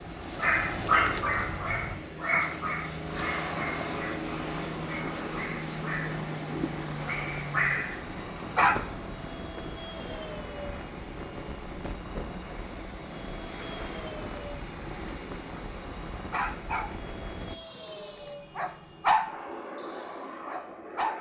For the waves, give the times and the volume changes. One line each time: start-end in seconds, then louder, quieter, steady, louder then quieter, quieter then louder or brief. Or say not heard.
0.0-17.6 steady.